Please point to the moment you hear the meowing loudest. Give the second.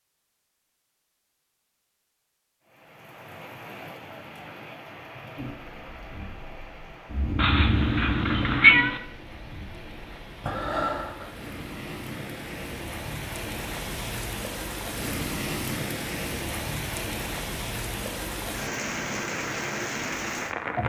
9 s.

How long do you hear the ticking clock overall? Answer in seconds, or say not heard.
not heard.